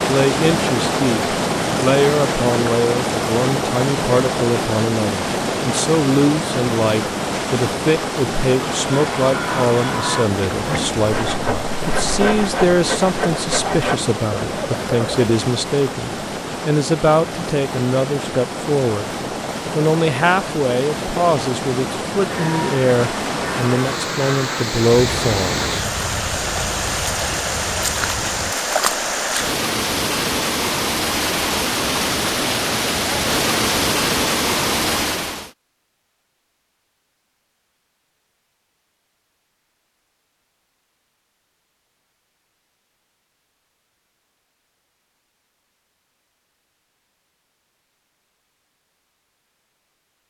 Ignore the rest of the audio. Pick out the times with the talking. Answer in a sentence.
You can hear the talking from 0.0 to 19.1 s and from 19.8 to 25.6 s.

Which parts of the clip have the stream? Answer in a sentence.
The stream can be heard from 0.0 to 35.5 s.